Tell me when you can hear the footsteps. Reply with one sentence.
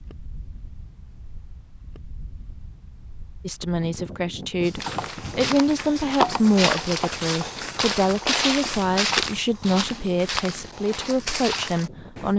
You can hear the footsteps from 4.6 to 12.3 s.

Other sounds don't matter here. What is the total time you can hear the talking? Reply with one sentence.
You can hear the talking for 9 seconds altogether.